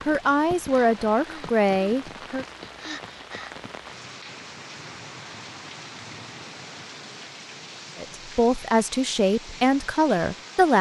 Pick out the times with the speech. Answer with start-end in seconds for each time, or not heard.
0.1-2.5, 8.0-10.7.